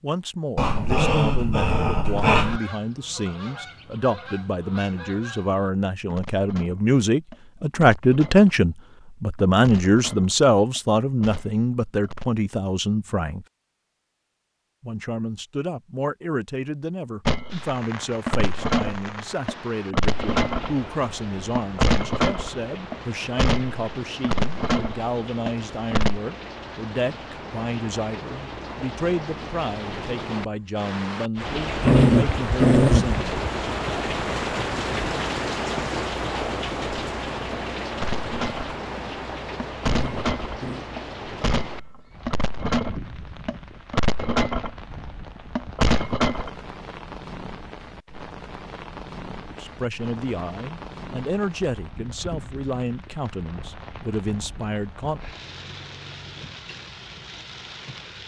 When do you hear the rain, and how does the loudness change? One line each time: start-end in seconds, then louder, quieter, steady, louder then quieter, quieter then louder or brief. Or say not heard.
17.4-58.2 louder then quieter.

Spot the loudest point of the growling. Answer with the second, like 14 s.
32 s.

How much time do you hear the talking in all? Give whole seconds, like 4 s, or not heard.
38 s.